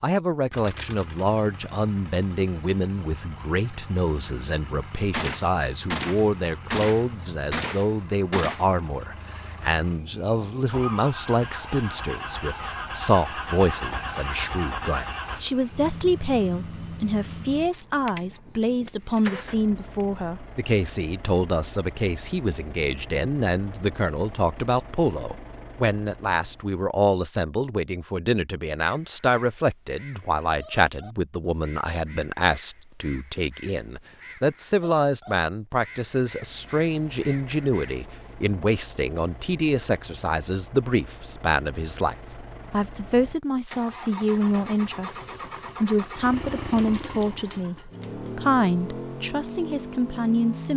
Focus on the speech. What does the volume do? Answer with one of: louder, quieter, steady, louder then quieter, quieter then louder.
steady.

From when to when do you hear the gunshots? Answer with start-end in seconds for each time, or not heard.
5.1-8.8, 18.1-20.1, 46.8-48.0.